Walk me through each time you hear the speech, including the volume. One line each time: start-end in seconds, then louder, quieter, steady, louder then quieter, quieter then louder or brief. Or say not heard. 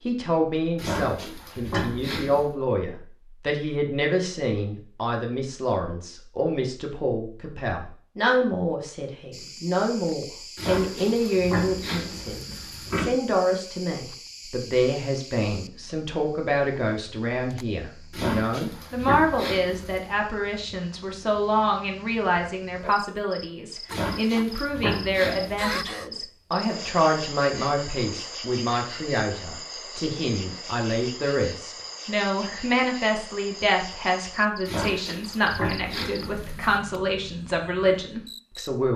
0.1-38.9 steady.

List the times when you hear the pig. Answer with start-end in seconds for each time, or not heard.
0.8-2.5, 10.6-13.1, 18.1-20.1, 23.9-25.9, 34.6-36.8.